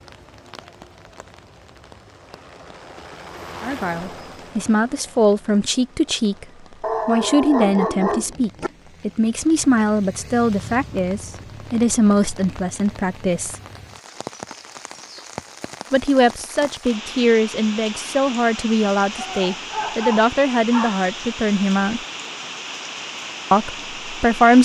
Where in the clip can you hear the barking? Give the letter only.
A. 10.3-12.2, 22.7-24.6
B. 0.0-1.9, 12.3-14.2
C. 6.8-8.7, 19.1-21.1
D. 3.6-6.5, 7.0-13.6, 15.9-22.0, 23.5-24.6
C.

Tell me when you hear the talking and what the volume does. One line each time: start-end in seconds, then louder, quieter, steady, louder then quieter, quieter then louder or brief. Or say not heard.
3.6-6.5 brief
7.0-13.6 steady
15.9-22.0 steady
23.5-24.6 brief.